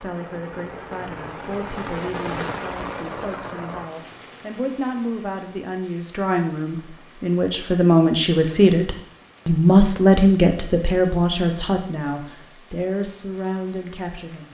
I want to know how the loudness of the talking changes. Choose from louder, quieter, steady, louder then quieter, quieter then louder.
louder then quieter.